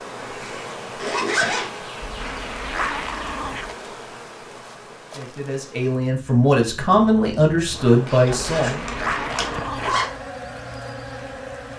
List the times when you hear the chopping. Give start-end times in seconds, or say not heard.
not heard.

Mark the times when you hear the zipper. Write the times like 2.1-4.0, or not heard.
0.1-1.7, 8.1-10.1.